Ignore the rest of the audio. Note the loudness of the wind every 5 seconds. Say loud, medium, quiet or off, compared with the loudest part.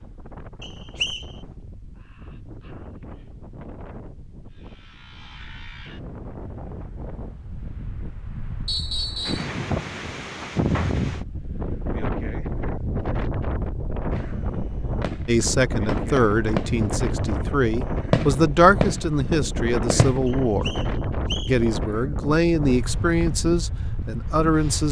quiet, medium, loud, loud, loud.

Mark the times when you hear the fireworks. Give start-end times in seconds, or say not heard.
14.1-20.4.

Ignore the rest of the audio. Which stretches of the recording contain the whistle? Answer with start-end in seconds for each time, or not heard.
0.6-1.2, 8.7-9.5, 20.2-21.6.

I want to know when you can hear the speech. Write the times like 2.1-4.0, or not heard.
15.2-20.8, 21.4-24.8.